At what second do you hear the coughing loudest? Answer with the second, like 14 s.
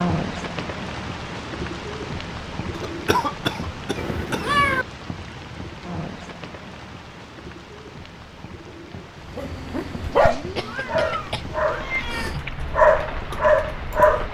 3 s.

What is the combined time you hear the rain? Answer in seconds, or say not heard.
14 s.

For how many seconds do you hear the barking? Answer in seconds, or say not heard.
5 s.